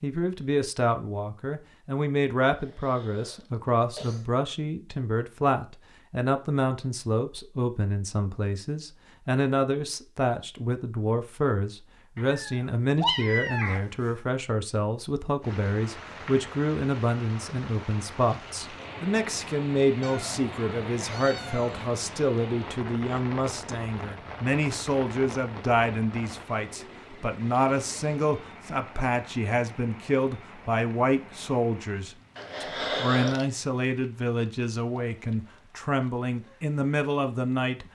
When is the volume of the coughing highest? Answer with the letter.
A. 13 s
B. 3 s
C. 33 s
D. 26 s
C.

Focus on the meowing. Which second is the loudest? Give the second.
13 s.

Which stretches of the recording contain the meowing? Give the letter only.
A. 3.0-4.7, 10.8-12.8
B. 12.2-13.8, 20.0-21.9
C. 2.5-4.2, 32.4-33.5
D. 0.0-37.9
B.